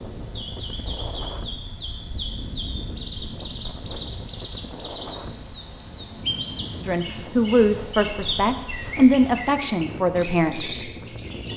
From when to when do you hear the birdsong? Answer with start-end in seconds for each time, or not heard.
0.0-11.5.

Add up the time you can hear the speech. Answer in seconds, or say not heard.
4 s.